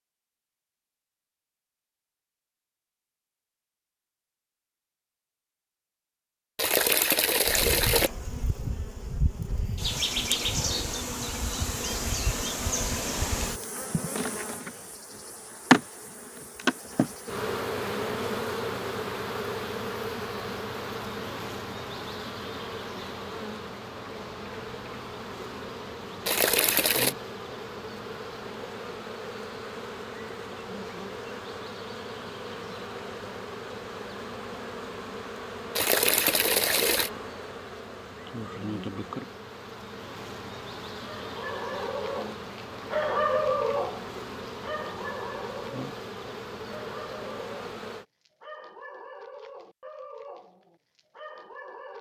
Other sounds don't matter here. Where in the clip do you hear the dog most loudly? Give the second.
43 s.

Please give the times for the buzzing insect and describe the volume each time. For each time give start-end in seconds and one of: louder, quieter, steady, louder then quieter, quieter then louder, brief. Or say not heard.
7.5-48.0 quieter.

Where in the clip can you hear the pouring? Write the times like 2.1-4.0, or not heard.
6.5-8.1, 26.2-27.1, 35.8-37.1.